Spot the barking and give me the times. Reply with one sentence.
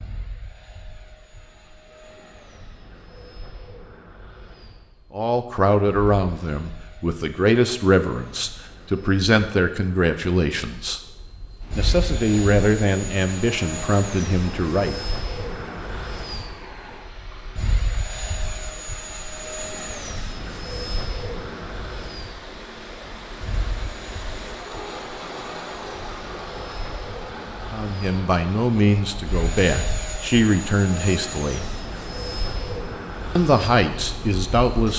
The barking can't be heard in this clip.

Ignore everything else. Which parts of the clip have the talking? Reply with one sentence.
The talking can be heard from 5.1 to 11.0 s, from 11.8 to 14.9 s, from 27.6 to 31.6 s and from 33.4 to 34.9 s.